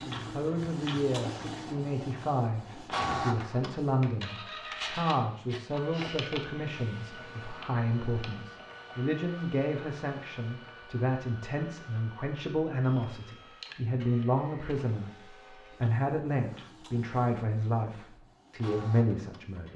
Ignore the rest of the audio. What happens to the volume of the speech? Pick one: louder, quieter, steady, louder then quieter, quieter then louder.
steady.